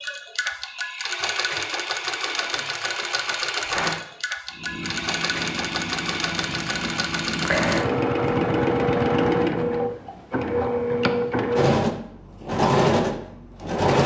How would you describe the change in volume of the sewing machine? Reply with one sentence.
The loudness of the sewing machine goes up.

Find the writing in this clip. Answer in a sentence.
The writing can be heard from 4.5 to 9.9 s.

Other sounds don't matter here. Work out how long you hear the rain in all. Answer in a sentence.
The rain can't be heard in this clip.